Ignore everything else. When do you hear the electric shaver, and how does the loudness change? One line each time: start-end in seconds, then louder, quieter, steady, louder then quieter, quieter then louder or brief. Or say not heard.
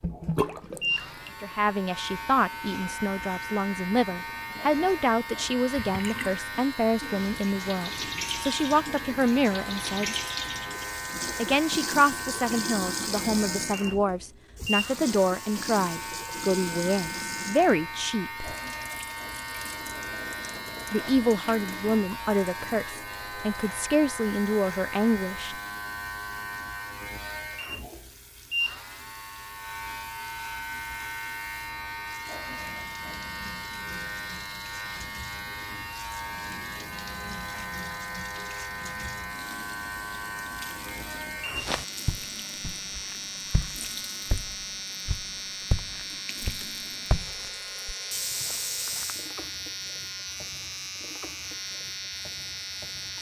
0.0-53.1 steady.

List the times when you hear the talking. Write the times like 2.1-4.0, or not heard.
1.4-10.2, 11.3-18.5, 20.9-25.6.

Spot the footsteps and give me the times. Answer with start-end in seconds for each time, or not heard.
41.5-49.3.